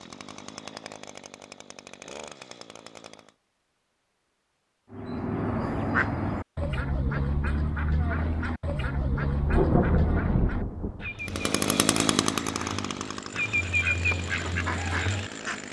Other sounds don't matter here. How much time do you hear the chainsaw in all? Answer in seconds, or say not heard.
8 s.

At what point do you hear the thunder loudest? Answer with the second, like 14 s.
10 s.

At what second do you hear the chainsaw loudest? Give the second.
12 s.